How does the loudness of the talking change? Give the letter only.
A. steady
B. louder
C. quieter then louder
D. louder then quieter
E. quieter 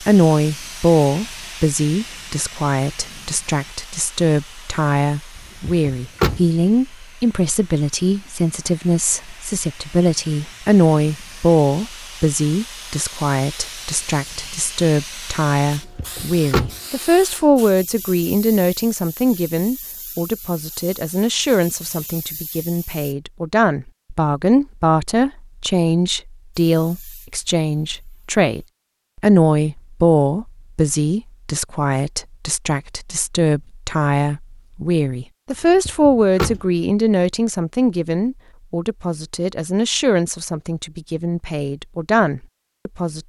A.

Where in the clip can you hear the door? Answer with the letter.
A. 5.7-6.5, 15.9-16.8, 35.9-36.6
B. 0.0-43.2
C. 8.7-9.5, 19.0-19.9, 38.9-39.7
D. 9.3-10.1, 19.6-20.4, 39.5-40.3
A.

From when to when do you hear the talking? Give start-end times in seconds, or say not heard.
0.0-43.2.